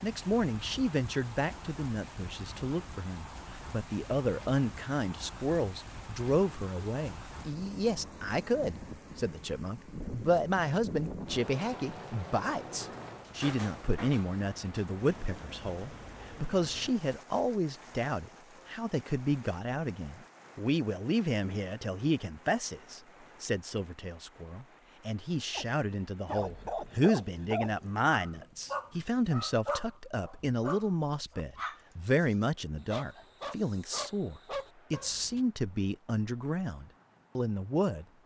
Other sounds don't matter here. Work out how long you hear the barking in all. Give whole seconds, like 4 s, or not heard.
10 s.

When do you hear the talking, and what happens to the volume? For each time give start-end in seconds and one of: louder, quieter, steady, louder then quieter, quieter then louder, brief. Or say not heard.
0.0-38.0 steady.